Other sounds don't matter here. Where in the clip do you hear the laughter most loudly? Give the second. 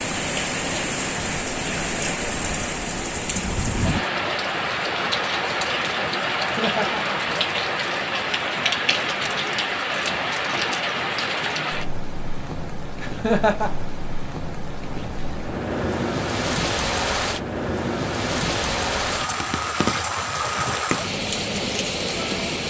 13 s.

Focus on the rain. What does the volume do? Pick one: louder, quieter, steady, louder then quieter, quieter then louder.
steady.